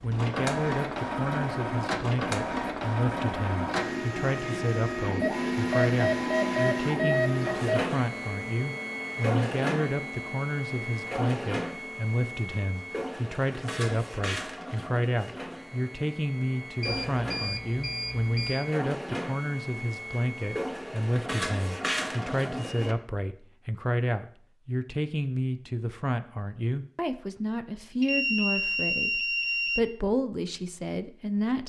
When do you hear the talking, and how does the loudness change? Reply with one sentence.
The talking can be heard from 0.0 to 31.6 s, at a steady volume.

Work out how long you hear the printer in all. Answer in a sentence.
You can hear the printer for 23 seconds altogether.